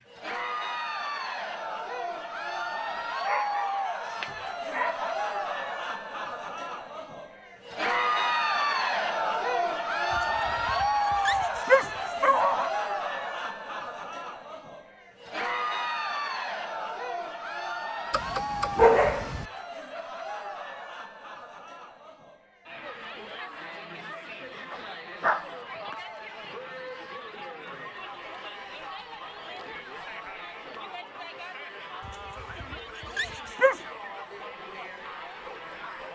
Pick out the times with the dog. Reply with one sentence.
The dog can be heard from 3.2 to 5.2 s, from 10.1 to 12.7 s, from 18.1 to 19.4 s, from 24.7 to 25.9 s and from 32.0 to 33.8 s.